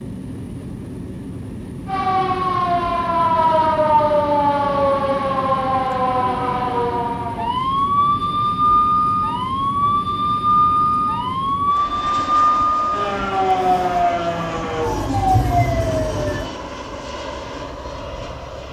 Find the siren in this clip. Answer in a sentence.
You can hear the siren from 1.9 to 16.5 s.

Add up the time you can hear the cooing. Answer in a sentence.
You can't hear the cooing here.